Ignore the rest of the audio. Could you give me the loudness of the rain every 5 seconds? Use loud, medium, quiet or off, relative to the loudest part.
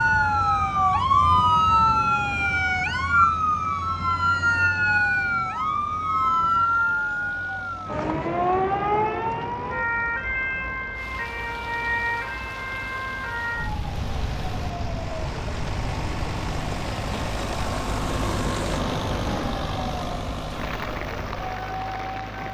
off, off, medium, loud, loud.